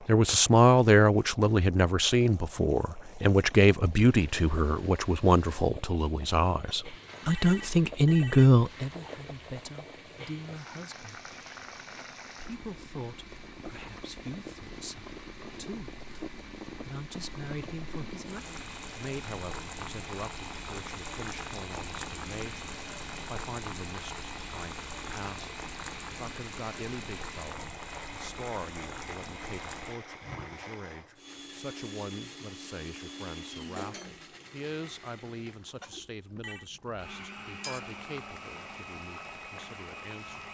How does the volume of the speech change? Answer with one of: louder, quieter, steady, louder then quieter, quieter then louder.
quieter.